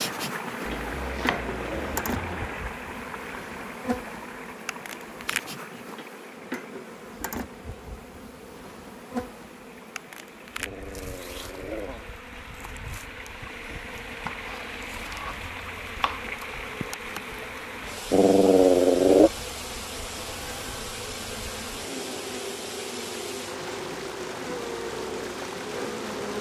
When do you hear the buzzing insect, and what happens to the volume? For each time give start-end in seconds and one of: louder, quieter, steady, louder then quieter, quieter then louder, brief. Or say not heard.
0.0-26.3 quieter then louder.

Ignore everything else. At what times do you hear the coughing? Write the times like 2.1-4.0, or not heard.
not heard.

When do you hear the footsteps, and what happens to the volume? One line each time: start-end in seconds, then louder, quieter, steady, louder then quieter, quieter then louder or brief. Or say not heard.
not heard.